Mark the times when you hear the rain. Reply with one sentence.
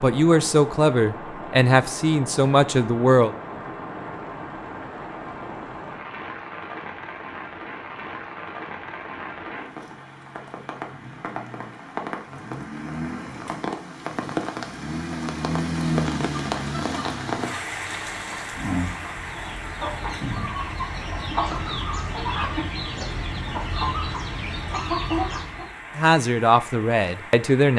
You can hear the rain from 0.0 to 27.7 s.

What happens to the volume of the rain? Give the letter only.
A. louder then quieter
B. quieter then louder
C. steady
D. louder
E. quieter
A.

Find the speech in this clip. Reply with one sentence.
You can hear the speech from 0.0 to 3.3 s and from 25.9 to 27.7 s.